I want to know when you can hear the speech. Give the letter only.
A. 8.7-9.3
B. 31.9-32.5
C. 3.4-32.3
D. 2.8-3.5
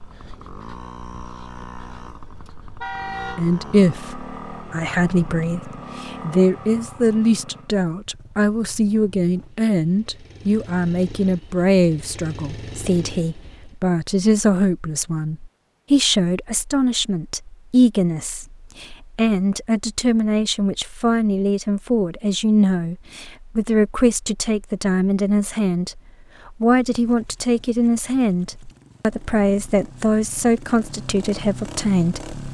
C.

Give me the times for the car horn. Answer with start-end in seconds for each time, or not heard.
2.8-3.5.